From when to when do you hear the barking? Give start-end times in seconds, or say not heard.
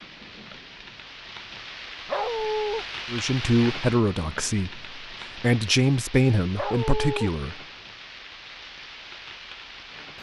2.0-2.9, 6.5-7.3.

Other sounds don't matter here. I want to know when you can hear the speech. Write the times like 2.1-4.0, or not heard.
3.0-7.5.